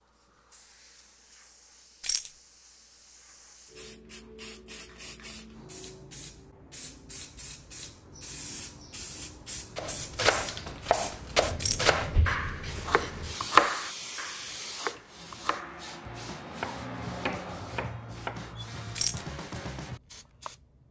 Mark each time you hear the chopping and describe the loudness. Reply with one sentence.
The chopping can be heard from 9.8 to 20.5 s, getting quieter.